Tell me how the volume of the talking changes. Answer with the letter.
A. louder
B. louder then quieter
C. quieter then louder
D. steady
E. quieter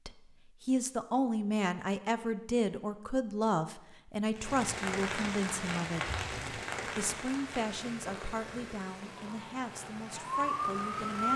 E.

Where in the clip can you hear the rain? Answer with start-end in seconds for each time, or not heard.
4.3-11.3.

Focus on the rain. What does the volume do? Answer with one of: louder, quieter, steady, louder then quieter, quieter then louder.
quieter.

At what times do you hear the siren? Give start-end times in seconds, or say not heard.
9.2-11.3.